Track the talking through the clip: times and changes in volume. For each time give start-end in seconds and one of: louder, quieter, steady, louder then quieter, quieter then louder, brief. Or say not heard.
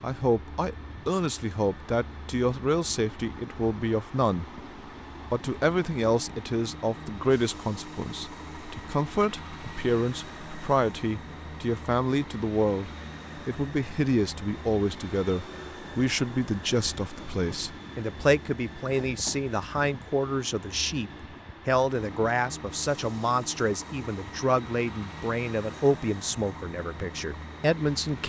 0.0-4.5 steady
5.3-28.2 steady.